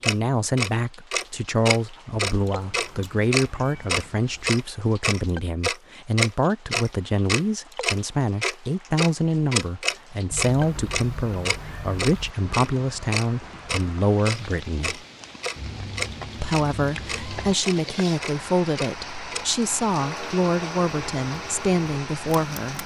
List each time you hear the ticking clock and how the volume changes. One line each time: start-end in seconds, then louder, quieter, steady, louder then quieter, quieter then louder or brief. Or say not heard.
0.0-22.8 quieter.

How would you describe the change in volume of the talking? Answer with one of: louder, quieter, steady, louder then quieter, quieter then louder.
steady.